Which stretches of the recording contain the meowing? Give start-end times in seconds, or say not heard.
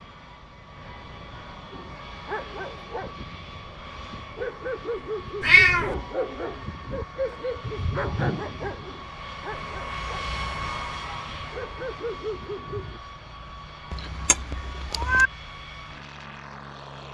5.4-6.0, 13.9-15.3.